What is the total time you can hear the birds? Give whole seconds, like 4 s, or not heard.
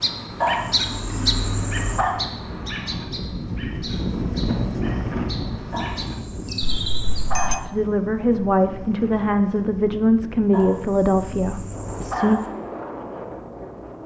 7 s.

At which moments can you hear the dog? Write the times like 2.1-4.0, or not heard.
0.4-2.1, 5.7-7.7, 10.5-12.5.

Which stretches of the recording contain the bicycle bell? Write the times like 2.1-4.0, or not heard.
6.6-7.7.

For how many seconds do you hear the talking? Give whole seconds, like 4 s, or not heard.
5 s.